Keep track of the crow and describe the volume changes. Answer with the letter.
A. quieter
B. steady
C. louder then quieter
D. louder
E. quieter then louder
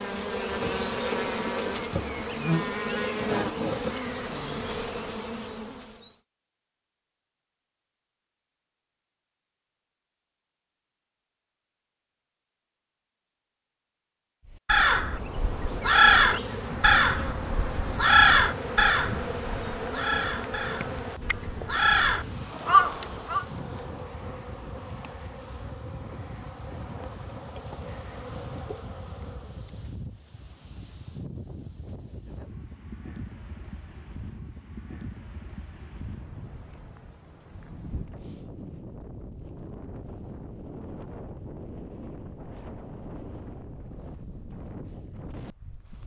E.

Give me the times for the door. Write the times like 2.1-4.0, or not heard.
not heard.